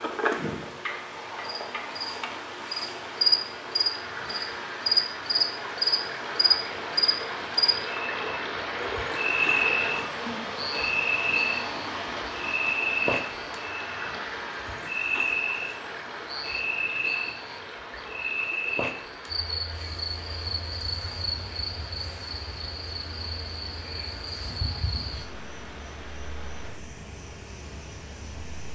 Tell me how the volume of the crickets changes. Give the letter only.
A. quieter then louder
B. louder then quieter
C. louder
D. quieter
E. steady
D.